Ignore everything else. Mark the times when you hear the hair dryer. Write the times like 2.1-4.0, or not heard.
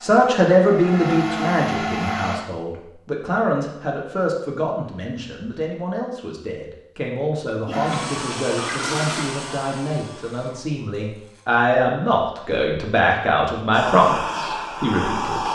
0.0-2.4, 7.7-11.4, 13.7-15.4.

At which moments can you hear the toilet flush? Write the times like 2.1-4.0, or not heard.
7.6-9.4.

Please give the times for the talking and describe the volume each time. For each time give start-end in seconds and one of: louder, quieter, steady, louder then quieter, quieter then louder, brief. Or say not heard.
0.0-15.4 quieter then louder.